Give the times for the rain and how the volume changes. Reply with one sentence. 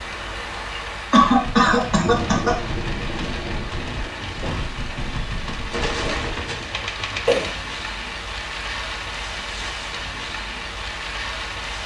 The rain can be heard from 0.0 to 11.8 s, at a steady volume.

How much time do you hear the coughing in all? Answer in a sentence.
You can hear the coughing for 3 seconds altogether.